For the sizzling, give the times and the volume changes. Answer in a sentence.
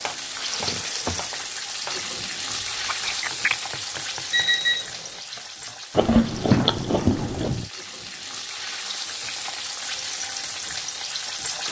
You can hear the sizzling from 0.0 to 11.6 s, getting quieter then louder.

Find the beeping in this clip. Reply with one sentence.
The beeping can be heard from 4.3 to 5.1 s.